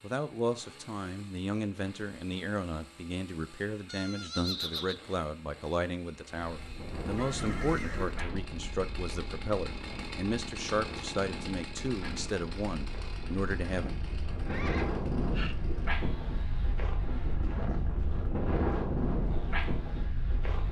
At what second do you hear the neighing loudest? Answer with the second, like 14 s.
5 s.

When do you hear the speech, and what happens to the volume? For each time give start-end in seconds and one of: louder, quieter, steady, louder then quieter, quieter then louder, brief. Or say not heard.
0.0-13.9 steady.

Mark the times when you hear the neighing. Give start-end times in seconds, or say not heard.
3.9-5.1, 7.2-8.2, 14.4-15.6.